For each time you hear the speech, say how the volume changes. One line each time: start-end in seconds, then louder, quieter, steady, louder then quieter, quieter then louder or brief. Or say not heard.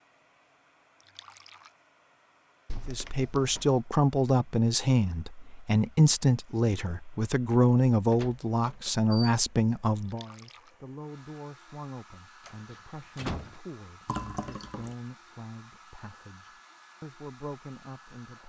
2.9-18.4 quieter.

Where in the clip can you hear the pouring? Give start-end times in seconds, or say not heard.
1.0-1.7, 10.0-10.7, 14.1-14.9.